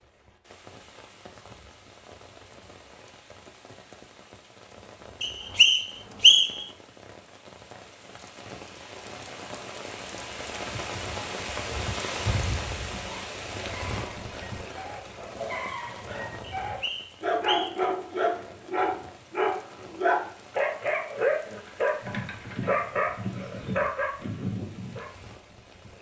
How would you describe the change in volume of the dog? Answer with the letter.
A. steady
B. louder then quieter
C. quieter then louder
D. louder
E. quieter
D.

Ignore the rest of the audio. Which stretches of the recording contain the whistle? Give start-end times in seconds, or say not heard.
5.2-6.7, 16.6-17.9.